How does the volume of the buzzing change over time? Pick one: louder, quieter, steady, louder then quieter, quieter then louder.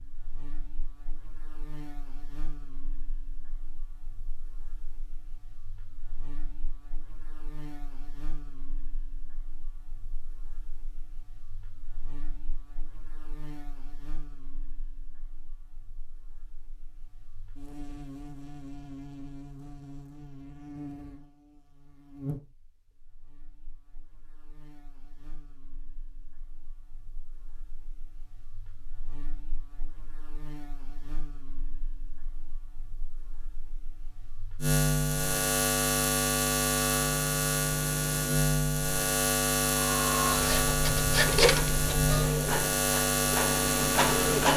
louder.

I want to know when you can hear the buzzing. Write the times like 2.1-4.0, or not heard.
0.0-44.5.